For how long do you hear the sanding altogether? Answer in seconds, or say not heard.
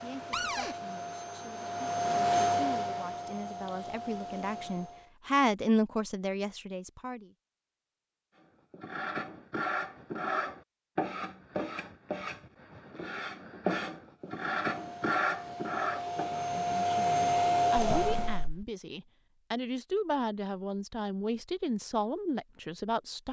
8 s.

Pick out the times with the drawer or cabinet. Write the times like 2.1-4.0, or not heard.
0.3-0.8, 17.9-18.6.